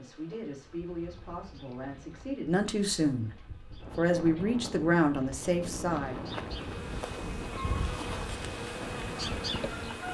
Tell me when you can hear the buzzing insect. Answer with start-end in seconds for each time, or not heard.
0.0-10.0.